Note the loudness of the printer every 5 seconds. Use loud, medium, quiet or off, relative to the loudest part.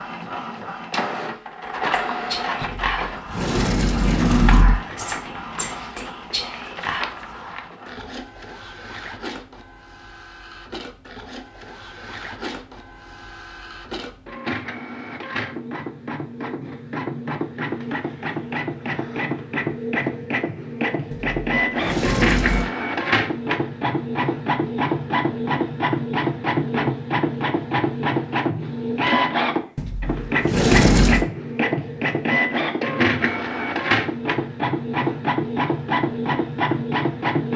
medium, quiet, quiet, medium, loud, loud, loud, loud.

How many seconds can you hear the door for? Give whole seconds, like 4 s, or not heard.
5 s.